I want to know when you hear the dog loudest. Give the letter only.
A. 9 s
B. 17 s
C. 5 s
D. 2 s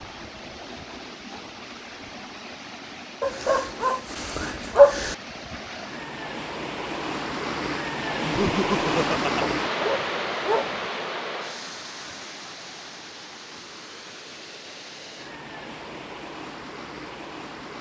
C.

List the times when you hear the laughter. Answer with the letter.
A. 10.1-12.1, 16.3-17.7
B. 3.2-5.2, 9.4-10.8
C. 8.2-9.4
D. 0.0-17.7
C.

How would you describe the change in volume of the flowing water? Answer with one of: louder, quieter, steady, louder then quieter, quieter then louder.
louder then quieter.